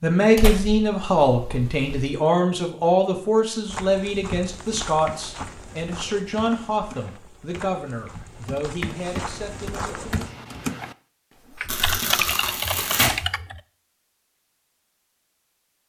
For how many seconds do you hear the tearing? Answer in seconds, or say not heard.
3 s.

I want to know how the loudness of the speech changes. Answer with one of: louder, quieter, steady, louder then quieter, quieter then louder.
quieter.